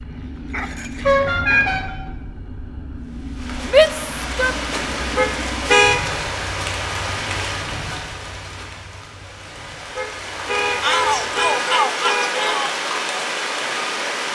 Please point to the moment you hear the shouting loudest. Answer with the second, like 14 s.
4 s.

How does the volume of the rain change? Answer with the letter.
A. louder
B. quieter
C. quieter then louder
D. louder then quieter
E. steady
C.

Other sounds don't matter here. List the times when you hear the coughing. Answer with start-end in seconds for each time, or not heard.
not heard.